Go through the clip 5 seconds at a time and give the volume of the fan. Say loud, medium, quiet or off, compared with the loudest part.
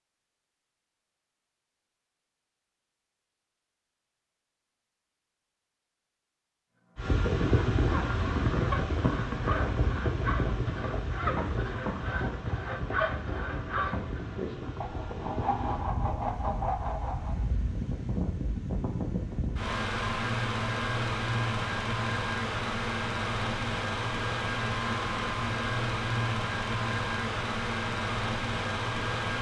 off, loud, medium, medium, loud, loud.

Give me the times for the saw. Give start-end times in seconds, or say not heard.
7.0-17.4.